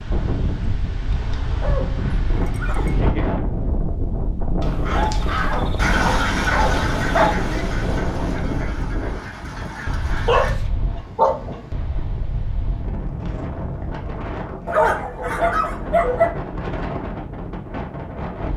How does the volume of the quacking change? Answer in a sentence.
The volume of the quacking goes down.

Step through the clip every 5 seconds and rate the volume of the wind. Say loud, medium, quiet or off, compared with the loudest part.
loud, loud, medium, loud.